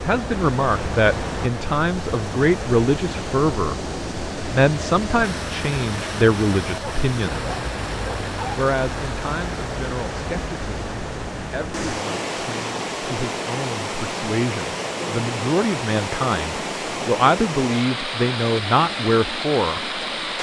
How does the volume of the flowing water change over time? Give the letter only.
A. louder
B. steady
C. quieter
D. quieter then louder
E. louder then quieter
B.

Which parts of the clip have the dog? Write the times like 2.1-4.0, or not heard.
6.8-8.6.